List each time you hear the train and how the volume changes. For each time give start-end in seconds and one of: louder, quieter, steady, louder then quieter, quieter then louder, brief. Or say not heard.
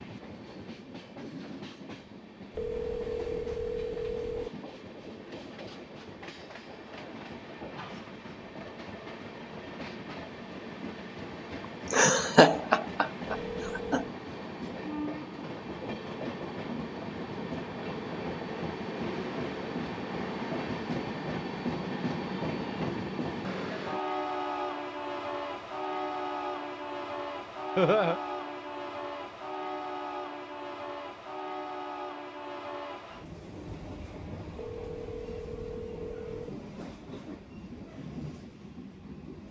0.0-39.4 louder then quieter.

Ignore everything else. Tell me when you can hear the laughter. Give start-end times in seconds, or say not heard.
11.9-14.0, 27.8-28.2.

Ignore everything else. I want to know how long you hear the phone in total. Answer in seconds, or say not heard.
5 s.